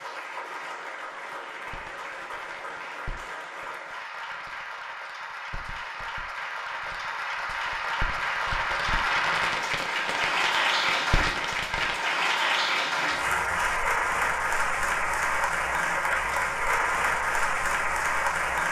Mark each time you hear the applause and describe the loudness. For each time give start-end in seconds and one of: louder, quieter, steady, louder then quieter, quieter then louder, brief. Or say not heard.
0.0-18.6 louder.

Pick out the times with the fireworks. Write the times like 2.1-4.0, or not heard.
1.3-11.9.